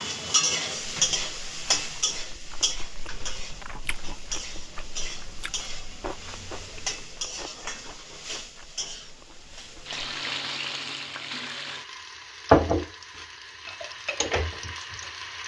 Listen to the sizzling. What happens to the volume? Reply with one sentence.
The loudness of the sizzling goes down, then up.